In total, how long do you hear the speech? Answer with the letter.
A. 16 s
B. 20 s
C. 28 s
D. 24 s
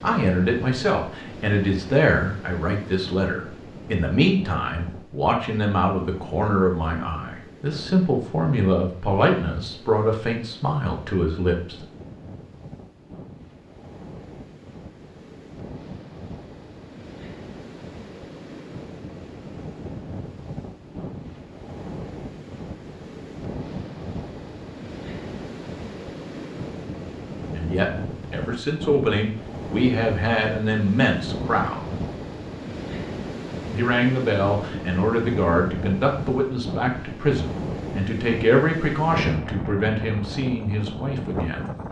D.